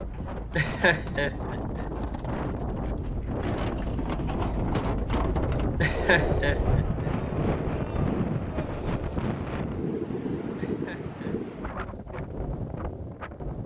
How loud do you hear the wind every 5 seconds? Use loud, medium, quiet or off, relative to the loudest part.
loud, loud, medium.